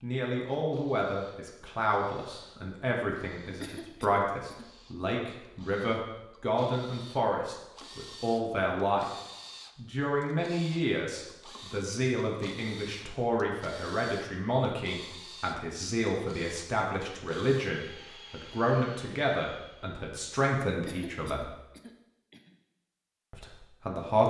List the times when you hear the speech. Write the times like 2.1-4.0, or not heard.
0.0-9.1, 9.8-21.5, 23.3-24.2.